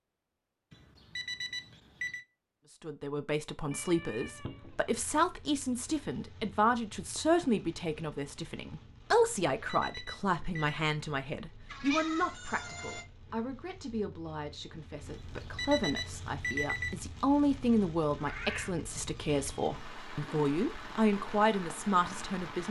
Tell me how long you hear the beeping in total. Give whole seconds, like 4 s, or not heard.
5 s.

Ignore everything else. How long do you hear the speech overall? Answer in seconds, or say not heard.
20 s.